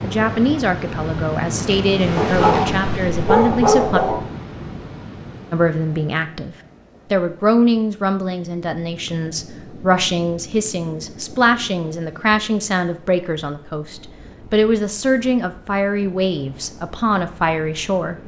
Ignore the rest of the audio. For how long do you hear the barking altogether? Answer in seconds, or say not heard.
2 s.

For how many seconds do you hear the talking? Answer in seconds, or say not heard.
17 s.